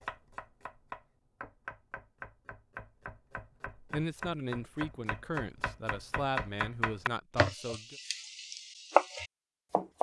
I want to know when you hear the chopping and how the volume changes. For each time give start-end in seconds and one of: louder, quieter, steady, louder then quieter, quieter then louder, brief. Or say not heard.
0.0-9.9 louder.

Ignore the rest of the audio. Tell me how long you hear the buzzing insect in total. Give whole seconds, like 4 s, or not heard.
not heard.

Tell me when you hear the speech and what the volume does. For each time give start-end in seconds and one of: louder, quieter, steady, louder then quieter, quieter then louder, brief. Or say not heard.
3.7-8.0 quieter then louder.